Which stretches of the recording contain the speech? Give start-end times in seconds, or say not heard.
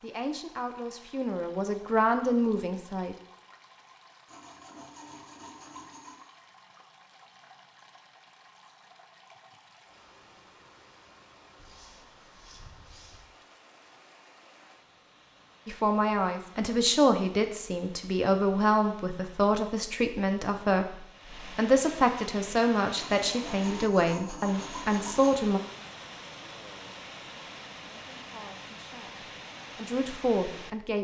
0.0-3.1, 15.7-25.6, 27.9-30.9.